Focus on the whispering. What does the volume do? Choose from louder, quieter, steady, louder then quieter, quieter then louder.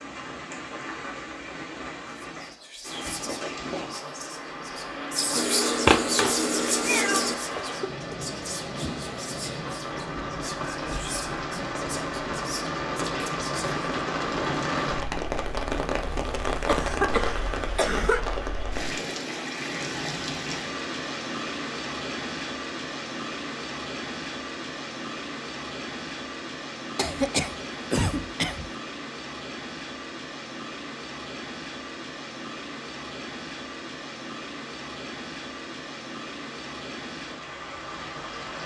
louder then quieter.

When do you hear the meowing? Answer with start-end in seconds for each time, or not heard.
5.3-7.3.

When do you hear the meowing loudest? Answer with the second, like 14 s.
6 s.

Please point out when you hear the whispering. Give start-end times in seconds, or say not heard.
2.3-13.7.